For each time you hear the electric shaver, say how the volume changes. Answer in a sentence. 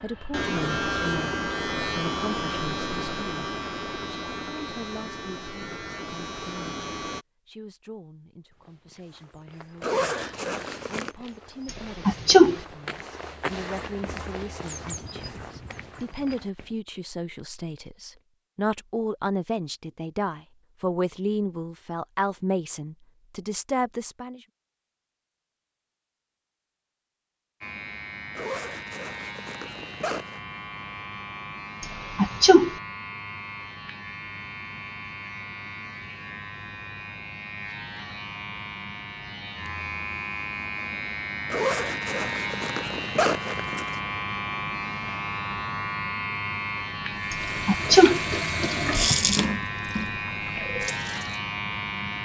You can hear the electric shaver from 0.0 to 7.2 s, getting quieter; and from 27.6 to 52.2 s, getting louder.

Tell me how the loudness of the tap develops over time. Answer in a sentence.
The loudness of the tap goes up, then down.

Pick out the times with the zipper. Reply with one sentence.
You can hear the zipper from 9.8 to 11.2 s, from 28.4 to 30.4 s and from 41.5 to 44.0 s.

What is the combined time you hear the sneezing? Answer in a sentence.
The sneezing can be heard for 3 seconds in total.